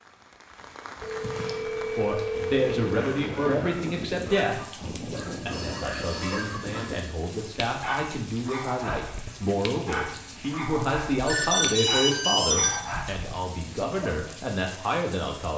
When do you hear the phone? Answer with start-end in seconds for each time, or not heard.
1.0-3.5, 5.5-7.0, 11.2-13.0.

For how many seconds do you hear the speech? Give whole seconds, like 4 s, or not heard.
13 s.